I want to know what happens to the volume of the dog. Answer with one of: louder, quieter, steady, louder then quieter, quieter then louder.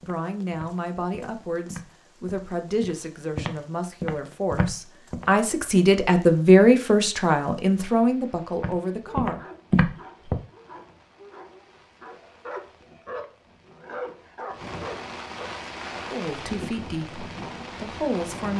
louder.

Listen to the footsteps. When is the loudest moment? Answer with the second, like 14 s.
10 s.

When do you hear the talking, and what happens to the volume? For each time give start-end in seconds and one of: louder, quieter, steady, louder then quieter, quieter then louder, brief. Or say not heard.
0.1-9.4 louder then quieter
16.1-18.5 brief.